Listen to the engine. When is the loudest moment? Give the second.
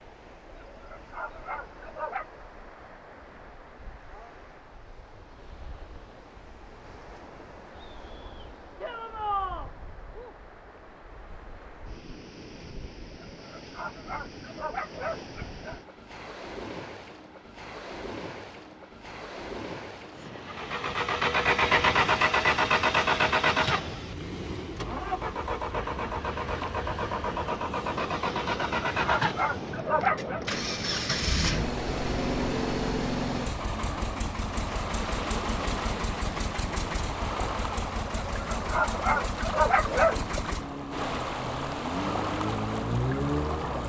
22 s.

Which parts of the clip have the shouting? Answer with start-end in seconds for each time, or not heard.
8.8-9.7.